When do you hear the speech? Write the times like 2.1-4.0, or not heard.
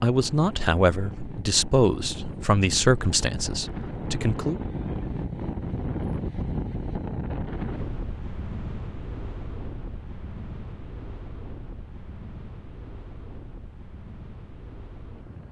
0.0-4.6.